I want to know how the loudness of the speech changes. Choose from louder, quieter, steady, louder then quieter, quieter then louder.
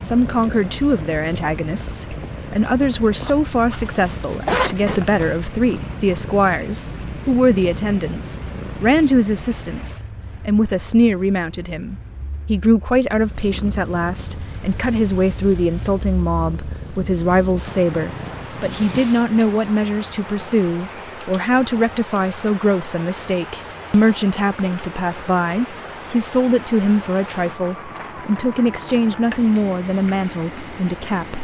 steady.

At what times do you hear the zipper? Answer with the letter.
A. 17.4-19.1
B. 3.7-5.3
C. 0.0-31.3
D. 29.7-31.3
B.